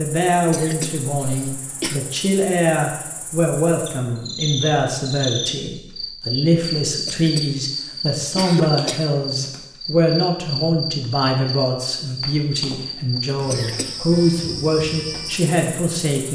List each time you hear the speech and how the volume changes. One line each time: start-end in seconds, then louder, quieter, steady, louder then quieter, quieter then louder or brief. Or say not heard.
0.0-16.2 steady.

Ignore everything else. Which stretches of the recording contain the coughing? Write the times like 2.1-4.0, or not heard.
0.5-2.0, 7.0-9.1, 13.5-14.2.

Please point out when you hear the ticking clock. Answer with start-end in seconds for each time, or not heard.
not heard.